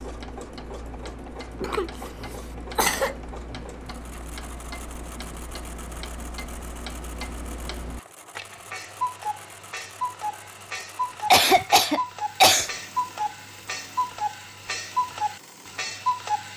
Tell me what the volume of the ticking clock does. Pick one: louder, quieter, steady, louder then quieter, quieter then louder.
louder.